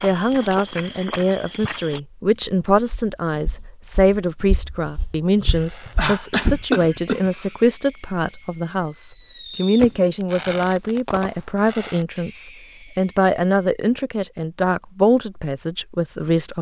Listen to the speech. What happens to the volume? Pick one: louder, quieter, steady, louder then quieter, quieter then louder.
steady.